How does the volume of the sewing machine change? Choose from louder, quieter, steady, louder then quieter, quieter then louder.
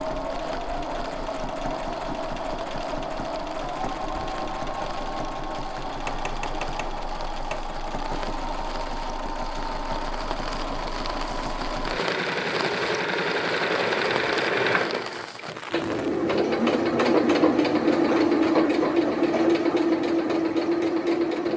louder.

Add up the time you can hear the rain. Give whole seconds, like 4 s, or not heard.
16 s.